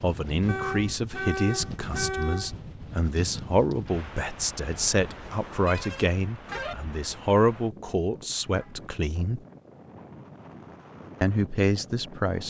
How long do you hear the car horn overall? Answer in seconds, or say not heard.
4 s.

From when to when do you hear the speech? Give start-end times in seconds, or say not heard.
0.0-9.4, 11.2-12.4.